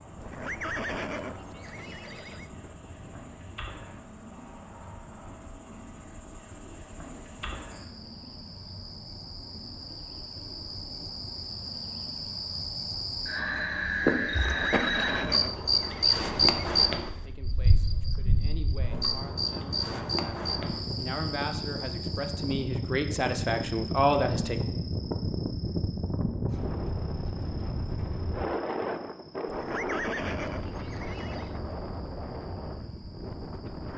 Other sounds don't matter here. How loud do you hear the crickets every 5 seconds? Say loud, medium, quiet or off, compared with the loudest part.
quiet, quiet, loud, loud, medium, quiet, quiet.